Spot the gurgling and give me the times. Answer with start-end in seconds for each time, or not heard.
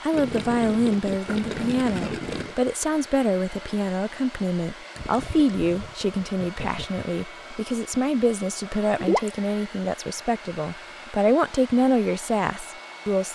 0.1-2.5, 5.0-7.2, 8.9-9.3.